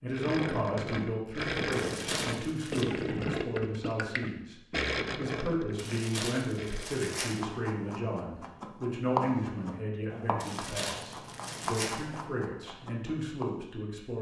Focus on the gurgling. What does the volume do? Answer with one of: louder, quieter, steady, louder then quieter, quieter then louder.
quieter.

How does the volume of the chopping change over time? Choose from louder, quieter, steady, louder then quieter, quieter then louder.
louder then quieter.